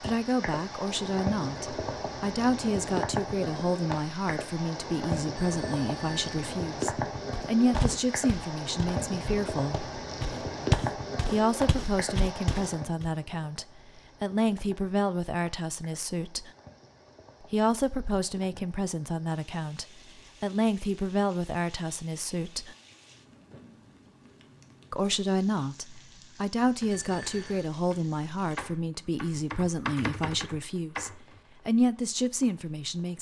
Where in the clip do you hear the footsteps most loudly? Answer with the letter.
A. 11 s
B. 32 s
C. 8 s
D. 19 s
A.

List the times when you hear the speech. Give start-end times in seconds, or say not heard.
0.0-9.9, 11.2-16.5, 17.5-22.8, 24.9-33.1.